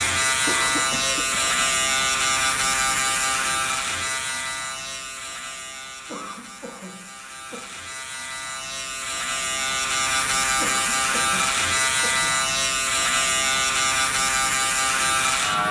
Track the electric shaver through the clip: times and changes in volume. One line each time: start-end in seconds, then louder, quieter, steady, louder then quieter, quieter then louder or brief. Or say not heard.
0.0-15.6 quieter then louder.